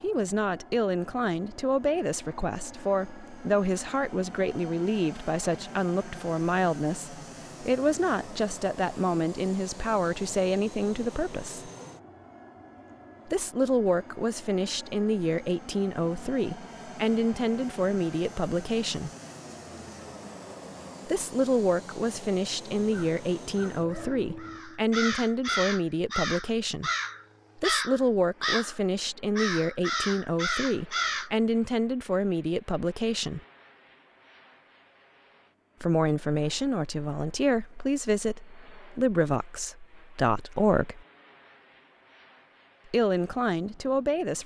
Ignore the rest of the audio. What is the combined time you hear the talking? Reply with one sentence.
You can hear the talking for 36 seconds altogether.